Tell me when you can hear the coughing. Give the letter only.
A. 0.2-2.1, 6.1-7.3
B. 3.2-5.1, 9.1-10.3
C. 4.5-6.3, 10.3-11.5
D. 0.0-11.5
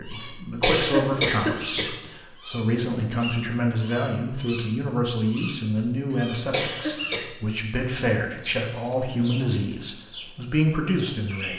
A.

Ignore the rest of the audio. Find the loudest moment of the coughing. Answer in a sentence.
The volume of the coughing peaks at 1 second.